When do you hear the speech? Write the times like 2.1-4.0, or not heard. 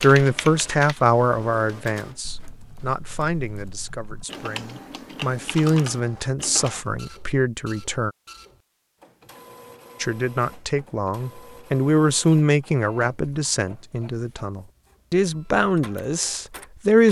0.0-8.1, 10.0-17.0.